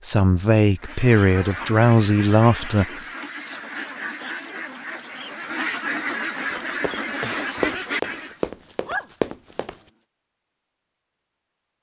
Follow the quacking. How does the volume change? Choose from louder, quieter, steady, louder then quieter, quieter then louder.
louder.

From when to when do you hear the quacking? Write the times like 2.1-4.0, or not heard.
0.8-8.4.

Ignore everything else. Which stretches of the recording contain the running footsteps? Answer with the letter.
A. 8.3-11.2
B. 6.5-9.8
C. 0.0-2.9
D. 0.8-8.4
B.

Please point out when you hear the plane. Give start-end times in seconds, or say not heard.
not heard.